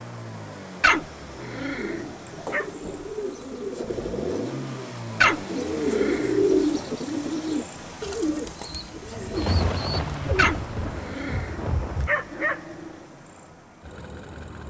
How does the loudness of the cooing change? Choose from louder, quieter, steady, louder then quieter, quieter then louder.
louder then quieter.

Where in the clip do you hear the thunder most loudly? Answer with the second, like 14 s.
10 s.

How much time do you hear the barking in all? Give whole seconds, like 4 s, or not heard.
6 s.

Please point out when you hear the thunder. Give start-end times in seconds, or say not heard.
9.3-12.1.